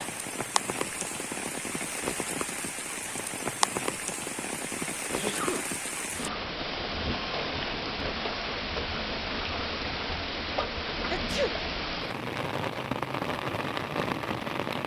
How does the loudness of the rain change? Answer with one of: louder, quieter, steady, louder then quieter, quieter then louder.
steady.